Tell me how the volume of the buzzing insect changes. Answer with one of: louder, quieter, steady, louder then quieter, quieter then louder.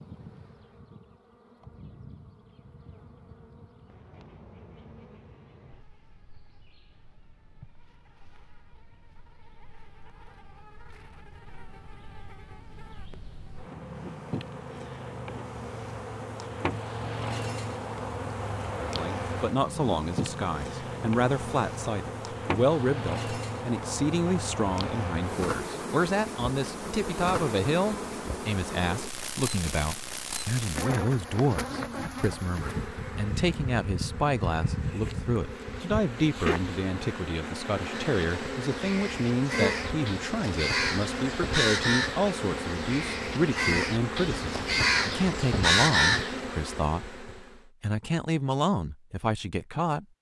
louder.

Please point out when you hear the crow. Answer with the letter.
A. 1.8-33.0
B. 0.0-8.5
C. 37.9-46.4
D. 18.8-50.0
C.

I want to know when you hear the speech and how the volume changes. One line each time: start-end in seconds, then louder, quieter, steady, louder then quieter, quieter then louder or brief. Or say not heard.
18.8-50.0 steady.